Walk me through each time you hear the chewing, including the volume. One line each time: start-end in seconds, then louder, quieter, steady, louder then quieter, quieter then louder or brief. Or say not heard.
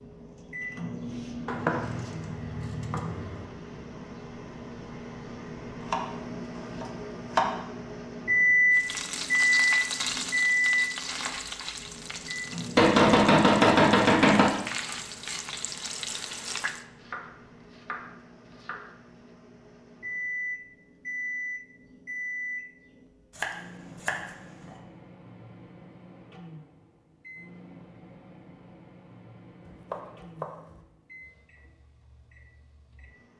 not heard.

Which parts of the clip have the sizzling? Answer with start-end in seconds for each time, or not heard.
8.7-16.9.